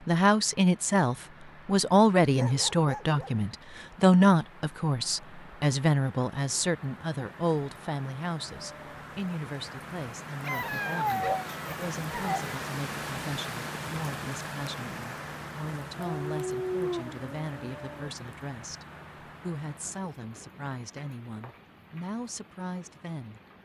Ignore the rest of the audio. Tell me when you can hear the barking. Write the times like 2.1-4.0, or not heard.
2.4-3.3, 10.4-12.6, 15.9-18.1.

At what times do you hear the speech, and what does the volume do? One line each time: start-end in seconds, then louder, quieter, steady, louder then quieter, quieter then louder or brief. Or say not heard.
0.1-23.4 quieter.